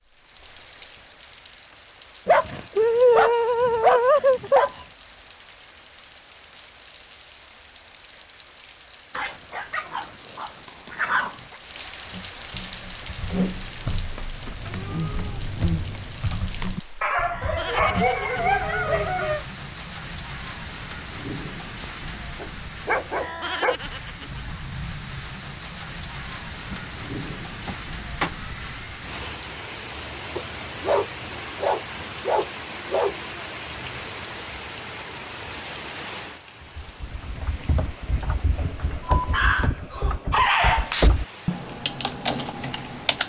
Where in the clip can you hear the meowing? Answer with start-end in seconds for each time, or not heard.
14.6-16.1, 26.7-28.9.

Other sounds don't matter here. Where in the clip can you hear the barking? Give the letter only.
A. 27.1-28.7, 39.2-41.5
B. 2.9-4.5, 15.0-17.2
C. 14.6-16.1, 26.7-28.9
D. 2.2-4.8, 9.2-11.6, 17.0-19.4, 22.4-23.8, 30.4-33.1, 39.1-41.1
D.